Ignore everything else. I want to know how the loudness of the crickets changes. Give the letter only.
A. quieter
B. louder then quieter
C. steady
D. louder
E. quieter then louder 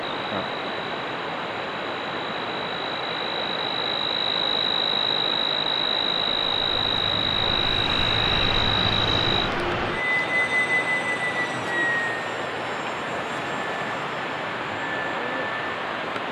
D.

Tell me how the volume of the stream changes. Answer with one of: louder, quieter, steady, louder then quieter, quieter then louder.
steady.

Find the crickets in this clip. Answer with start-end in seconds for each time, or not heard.
0.0-9.5.